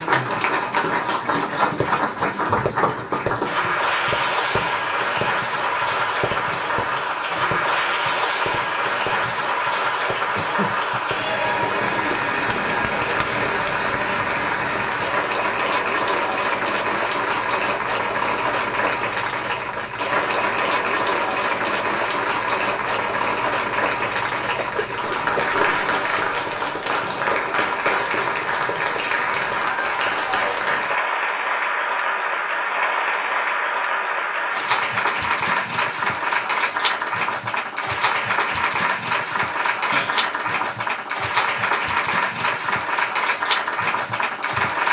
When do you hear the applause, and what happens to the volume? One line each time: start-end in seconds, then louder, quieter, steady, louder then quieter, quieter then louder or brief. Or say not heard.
0.0-44.8 steady.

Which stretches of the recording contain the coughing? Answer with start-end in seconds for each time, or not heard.
10.3-10.8, 24.6-25.6, 39.9-40.7.